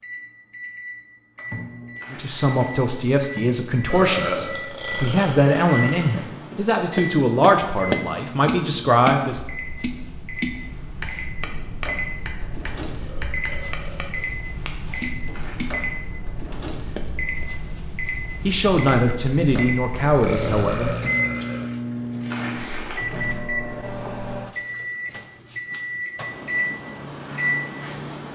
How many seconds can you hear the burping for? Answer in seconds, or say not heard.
5 s.